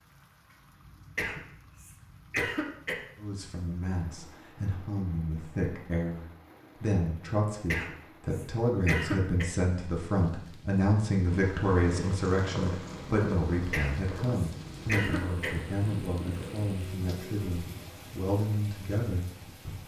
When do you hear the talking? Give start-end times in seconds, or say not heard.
3.1-19.8.